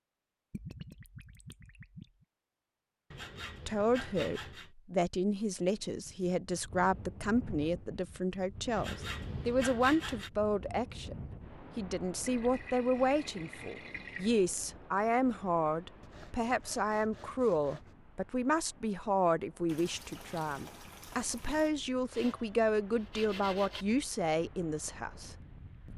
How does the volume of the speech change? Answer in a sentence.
The volume of the speech stays about the same.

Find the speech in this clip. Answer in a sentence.
The speech can be heard from 3.6 to 25.9 s.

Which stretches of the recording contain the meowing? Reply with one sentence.
You can't hear the meowing here.